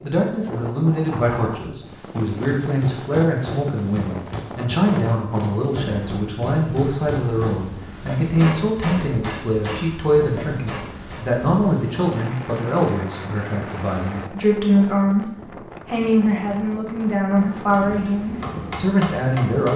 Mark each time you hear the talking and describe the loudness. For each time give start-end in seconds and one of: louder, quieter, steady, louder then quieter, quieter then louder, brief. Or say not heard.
0.0-19.7 steady.